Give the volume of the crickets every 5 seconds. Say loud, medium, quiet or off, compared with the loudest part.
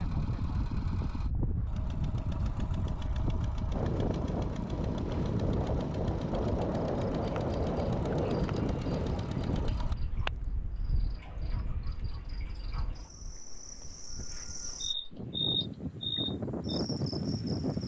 off, quiet, medium, loud.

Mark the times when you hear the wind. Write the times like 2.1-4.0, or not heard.
0.0-17.8.